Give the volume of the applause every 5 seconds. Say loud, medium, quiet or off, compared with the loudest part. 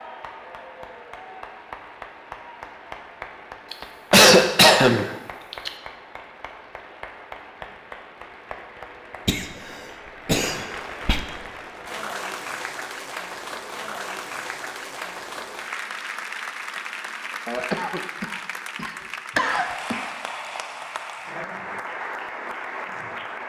medium, medium, loud, loud, loud.